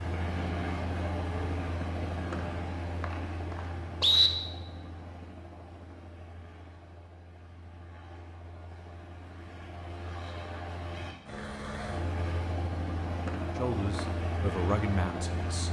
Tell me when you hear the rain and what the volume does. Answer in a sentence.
You can't hear the rain here.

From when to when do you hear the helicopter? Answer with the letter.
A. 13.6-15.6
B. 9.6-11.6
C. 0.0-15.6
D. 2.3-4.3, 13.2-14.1
C.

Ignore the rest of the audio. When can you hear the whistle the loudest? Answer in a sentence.
The volume of the whistle peaks at 4 seconds.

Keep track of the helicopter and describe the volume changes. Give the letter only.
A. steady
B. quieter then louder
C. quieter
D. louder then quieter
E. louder
B.